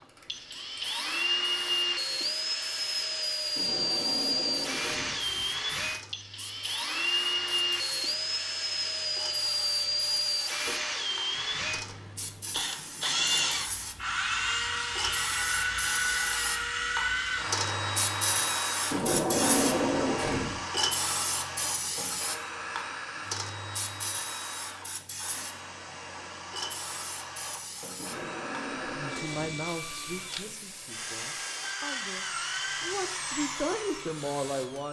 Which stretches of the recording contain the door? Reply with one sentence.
The door can be heard from 3.5 to 5.2 s, from 18.9 to 20.6 s and from 27.9 to 29.7 s.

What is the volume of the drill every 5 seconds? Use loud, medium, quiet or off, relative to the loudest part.
loud, loud, loud, loud, medium, medium, medium.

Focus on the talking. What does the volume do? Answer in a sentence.
The volume of the talking goes down, then up.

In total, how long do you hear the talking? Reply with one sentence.
You can hear the talking for 6 seconds altogether.